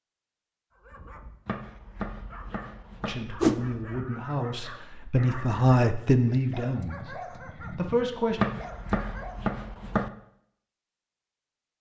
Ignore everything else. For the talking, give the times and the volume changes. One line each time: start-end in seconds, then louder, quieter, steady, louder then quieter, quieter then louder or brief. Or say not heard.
3.0-8.4 louder then quieter.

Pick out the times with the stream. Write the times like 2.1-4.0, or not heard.
not heard.